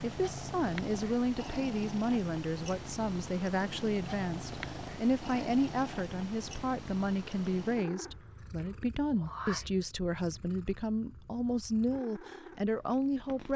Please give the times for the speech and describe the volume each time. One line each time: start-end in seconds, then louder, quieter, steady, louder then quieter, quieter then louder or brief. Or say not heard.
0.0-13.5 steady.